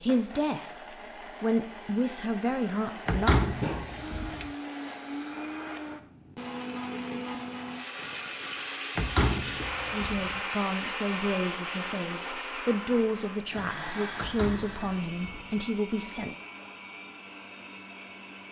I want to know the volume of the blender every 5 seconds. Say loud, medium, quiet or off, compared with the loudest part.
medium, loud, loud, medium.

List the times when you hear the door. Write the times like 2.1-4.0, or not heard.
3.0-4.5, 8.9-10.4, 14.2-15.6.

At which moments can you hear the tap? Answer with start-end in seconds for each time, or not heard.
3.4-5.7.